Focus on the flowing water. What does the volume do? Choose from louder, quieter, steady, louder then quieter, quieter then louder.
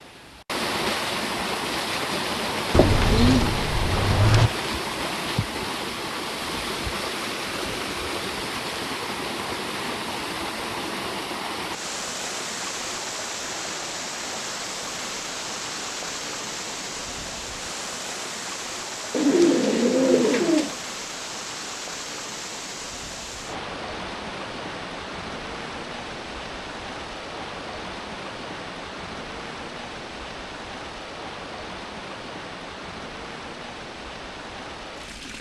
quieter.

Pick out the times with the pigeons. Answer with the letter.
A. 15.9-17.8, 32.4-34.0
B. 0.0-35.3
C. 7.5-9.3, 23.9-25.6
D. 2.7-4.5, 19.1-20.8
D.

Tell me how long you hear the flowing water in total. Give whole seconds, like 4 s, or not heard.
35 s.